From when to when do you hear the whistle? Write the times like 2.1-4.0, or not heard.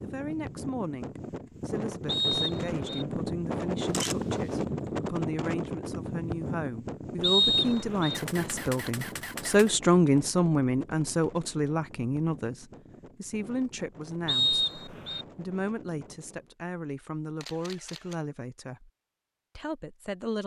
2.0-3.0, 7.2-8.2, 14.2-15.2.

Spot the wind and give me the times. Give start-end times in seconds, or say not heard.
0.0-16.6.